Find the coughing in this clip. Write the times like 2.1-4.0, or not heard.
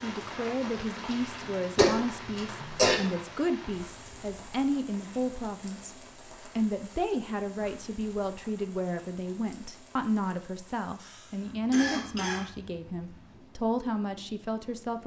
0.9-3.0, 11.0-12.4.